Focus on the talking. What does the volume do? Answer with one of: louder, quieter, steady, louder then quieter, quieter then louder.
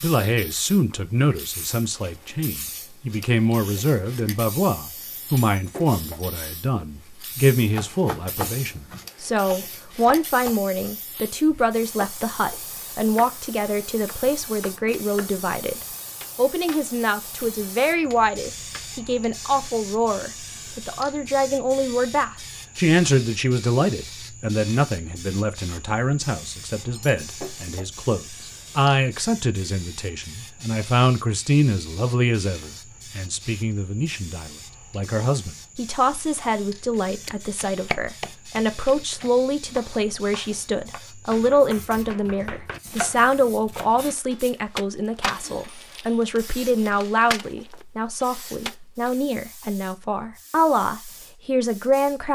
steady.